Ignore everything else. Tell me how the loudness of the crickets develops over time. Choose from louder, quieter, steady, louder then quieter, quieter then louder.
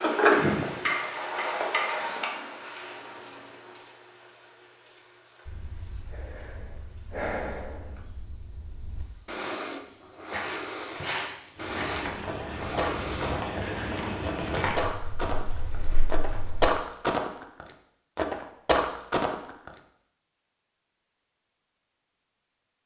quieter then louder.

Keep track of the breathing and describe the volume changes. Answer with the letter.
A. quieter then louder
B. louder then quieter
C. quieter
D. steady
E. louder
E.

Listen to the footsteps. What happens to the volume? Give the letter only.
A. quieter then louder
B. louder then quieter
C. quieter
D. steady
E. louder
E.